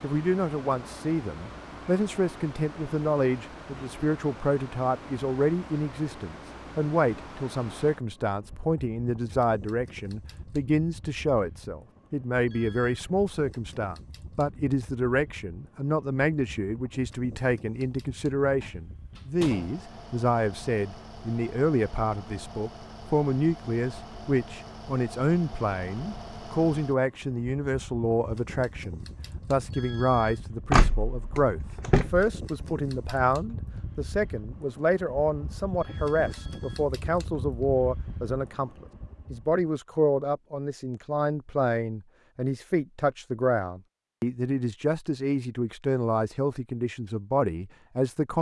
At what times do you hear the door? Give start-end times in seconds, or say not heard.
18.6-19.8, 30.7-32.3.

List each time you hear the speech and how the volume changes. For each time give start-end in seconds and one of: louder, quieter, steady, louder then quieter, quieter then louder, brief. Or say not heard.
0.0-48.3 steady.